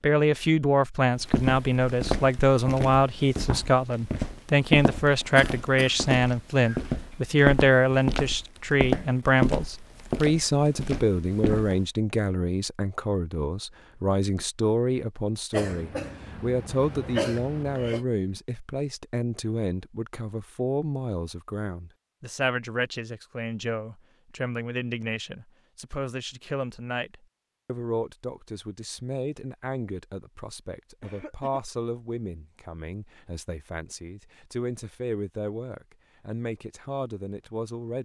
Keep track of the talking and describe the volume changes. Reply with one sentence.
The volume of the talking goes down.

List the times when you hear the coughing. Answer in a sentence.
The coughing can be heard from 5.3 to 6.0 s, from 15.5 to 18.1 s and from 31.0 to 31.6 s.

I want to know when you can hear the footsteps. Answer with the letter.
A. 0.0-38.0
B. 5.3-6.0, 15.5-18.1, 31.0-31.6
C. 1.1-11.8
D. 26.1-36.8
C.